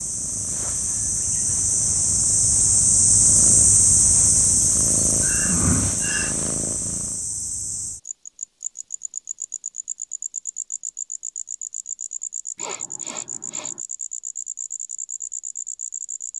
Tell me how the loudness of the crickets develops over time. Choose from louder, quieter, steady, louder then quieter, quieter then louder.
quieter.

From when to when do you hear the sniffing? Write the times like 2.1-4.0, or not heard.
5.2-6.3, 12.6-13.8.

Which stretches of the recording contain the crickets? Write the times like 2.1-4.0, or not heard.
0.0-16.3.